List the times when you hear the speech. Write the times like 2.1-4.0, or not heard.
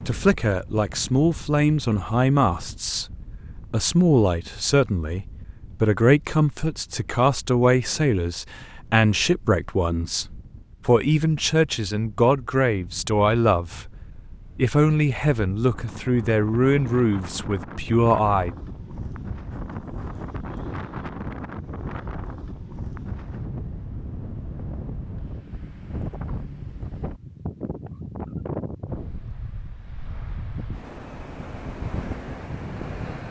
0.0-18.6.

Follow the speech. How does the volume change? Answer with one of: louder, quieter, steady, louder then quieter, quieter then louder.
steady.